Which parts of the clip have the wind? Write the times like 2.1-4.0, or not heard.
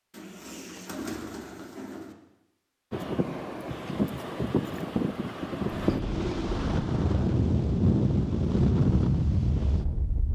2.9-10.3.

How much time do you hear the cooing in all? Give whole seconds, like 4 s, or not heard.
3 s.